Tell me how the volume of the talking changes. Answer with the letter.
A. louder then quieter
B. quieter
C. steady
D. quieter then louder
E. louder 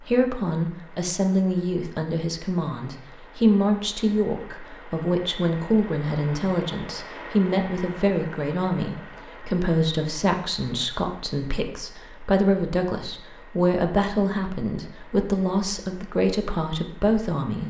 C.